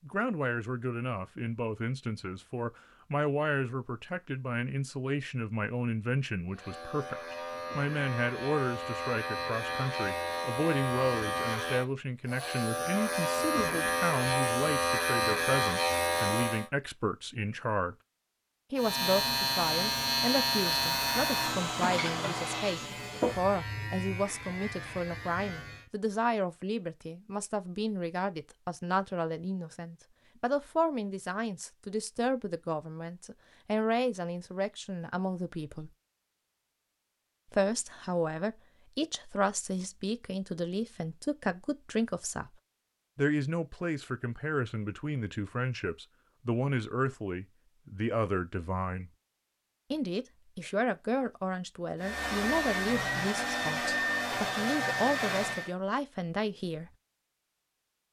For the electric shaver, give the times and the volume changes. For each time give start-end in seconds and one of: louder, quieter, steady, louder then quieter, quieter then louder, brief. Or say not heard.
6.5-16.7 louder
18.8-25.9 quieter.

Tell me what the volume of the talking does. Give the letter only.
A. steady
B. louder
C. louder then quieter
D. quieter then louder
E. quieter
A.